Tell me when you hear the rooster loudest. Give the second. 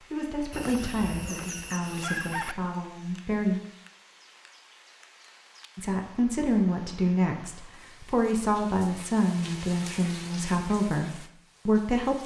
2 s.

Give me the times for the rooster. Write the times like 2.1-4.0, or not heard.
0.5-2.5.